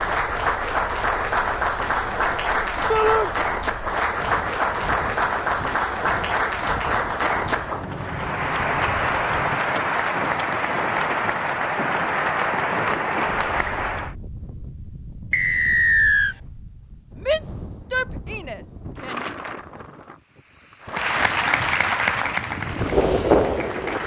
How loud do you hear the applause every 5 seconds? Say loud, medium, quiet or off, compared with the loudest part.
loud, loud, loud, off, loud.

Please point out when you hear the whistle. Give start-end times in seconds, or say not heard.
15.3-16.4.